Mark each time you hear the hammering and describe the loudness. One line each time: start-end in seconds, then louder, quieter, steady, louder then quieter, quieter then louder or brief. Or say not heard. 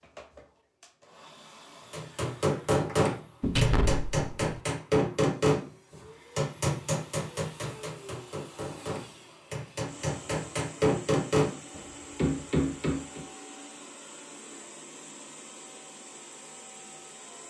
1.9-13.2 quieter then louder.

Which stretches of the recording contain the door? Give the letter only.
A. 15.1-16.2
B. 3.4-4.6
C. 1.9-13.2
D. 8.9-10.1
B.